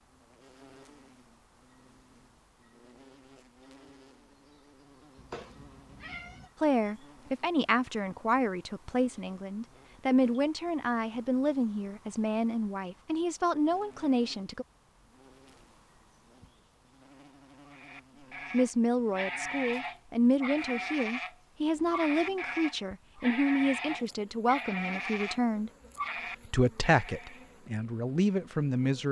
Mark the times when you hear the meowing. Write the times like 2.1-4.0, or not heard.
5.2-6.5.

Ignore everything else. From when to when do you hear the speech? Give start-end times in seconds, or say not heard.
6.6-14.7, 18.5-25.7, 26.4-29.0.